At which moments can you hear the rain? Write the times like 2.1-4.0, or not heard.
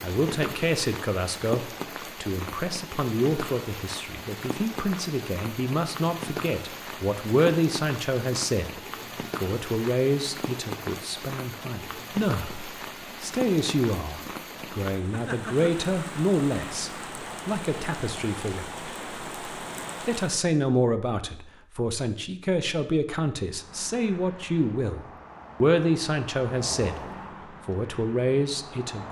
0.0-20.4.